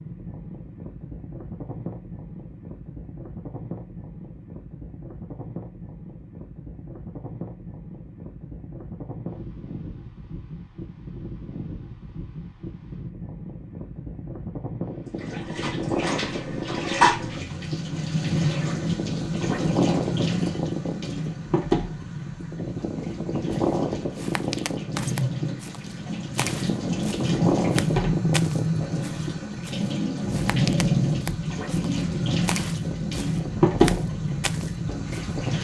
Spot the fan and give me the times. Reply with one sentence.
You can hear the fan from 0.0 to 35.5 s.